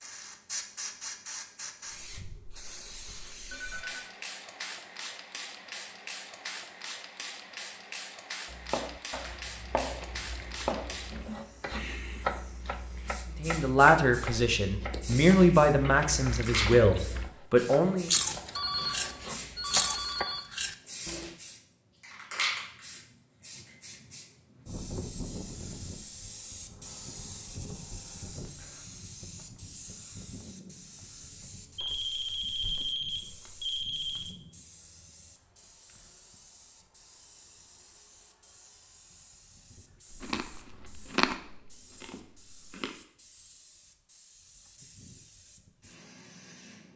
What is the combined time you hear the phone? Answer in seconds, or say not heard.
5 s.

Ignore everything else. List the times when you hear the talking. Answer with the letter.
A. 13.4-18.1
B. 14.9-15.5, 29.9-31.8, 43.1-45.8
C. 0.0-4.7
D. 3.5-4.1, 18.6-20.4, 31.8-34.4
A.